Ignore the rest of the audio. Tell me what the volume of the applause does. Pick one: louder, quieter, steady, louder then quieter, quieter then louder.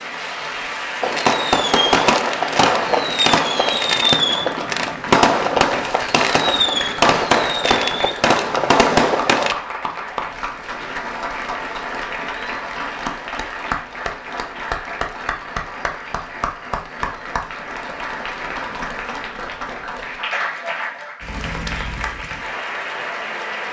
steady.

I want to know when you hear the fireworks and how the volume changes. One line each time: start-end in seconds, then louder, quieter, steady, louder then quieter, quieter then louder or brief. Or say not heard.
1.0-9.6 steady.